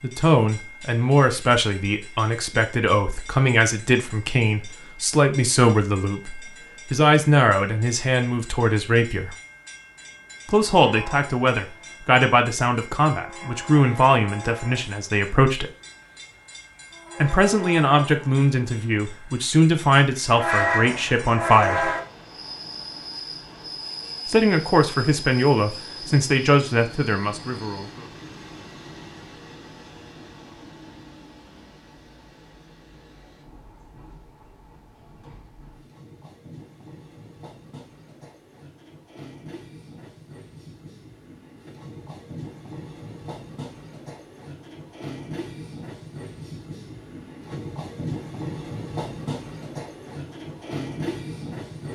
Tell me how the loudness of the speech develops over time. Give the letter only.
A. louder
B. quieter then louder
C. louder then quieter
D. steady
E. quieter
D.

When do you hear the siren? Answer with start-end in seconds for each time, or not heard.
not heard.